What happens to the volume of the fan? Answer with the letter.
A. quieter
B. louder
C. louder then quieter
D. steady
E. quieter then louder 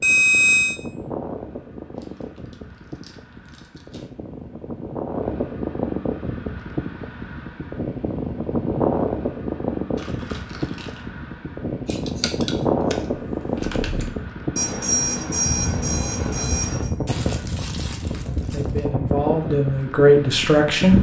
B.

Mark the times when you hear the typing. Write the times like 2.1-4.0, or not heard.
11.8-14.1.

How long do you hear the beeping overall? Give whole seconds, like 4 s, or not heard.
3 s.